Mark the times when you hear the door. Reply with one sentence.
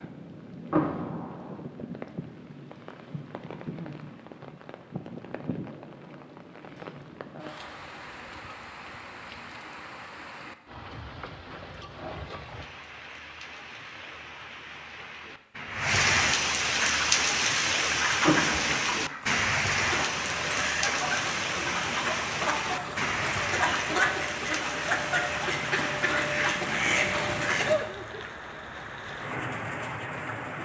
You can hear the door from 0.7 to 1.6 s and from 18.2 to 19.1 s.